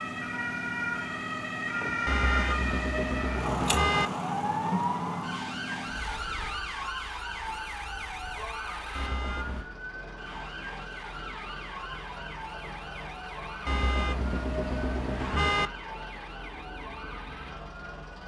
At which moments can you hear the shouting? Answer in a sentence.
You can't hear the shouting here.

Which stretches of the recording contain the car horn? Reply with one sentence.
You can hear the car horn from 2.0 to 4.1 s, from 8.9 to 9.7 s and from 13.7 to 15.7 s.